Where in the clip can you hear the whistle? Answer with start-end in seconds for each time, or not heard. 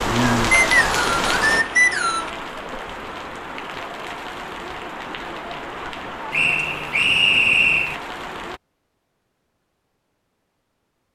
0.5-2.3, 6.3-8.0.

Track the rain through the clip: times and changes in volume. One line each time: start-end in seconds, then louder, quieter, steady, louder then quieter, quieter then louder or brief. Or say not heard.
0.0-8.6 quieter.